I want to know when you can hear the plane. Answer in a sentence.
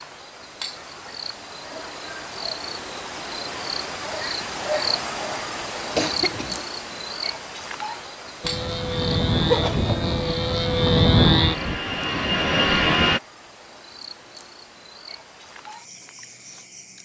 The plane can be heard from 8.4 to 13.2 s.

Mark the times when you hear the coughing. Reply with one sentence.
You can hear the coughing from 6.0 to 6.7 s and from 9.4 to 9.9 s.